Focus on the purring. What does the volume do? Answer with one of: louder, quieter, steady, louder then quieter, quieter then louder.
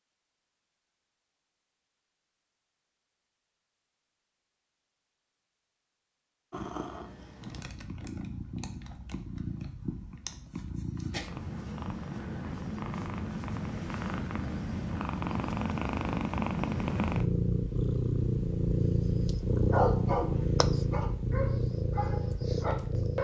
louder.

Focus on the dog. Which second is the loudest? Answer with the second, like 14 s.
20 s.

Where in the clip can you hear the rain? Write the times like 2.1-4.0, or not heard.
not heard.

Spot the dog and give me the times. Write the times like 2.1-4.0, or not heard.
19.6-23.1.